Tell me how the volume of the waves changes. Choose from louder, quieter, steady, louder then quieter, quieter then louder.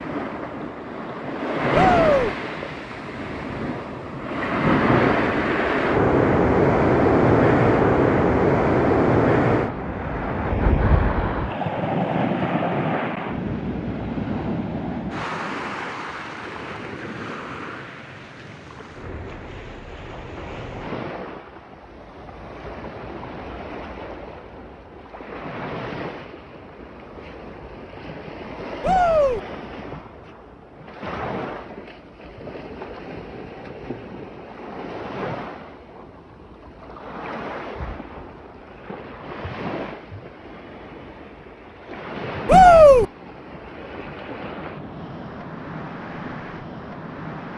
quieter.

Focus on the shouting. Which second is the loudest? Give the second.
43 s.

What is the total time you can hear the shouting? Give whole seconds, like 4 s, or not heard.
2 s.